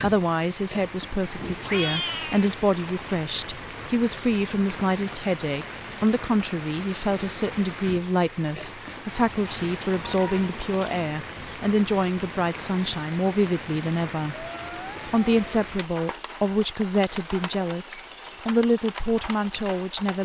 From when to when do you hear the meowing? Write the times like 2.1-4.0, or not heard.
1.4-2.5, 9.3-11.1, 14.3-15.5.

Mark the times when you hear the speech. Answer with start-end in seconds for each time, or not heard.
0.0-14.4, 15.1-20.2.